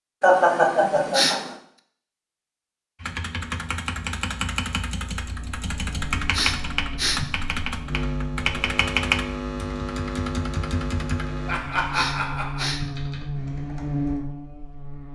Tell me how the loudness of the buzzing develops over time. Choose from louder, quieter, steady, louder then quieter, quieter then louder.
louder.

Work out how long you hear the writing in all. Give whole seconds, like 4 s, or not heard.
not heard.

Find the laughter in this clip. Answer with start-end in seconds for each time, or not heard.
0.2-1.4, 11.4-12.7.